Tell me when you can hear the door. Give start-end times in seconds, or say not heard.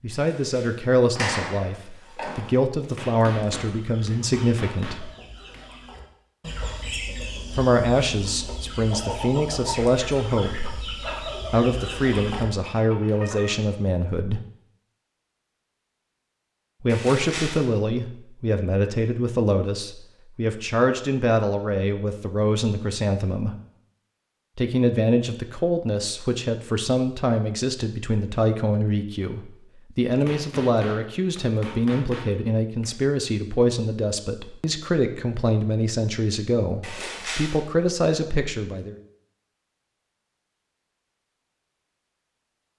0.1-2.5, 16.9-17.6, 36.8-37.6.